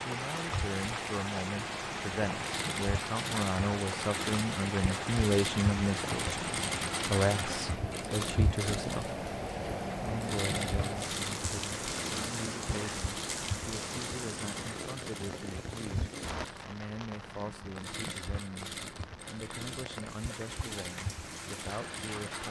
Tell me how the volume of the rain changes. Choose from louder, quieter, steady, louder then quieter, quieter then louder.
quieter.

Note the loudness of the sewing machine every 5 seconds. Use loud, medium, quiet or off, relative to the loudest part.
loud, loud, loud, medium, medium.